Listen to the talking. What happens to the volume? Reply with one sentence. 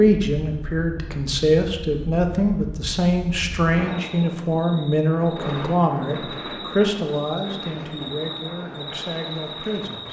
The volume of the talking goes down.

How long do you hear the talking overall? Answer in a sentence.
The talking can be heard for 10 seconds in total.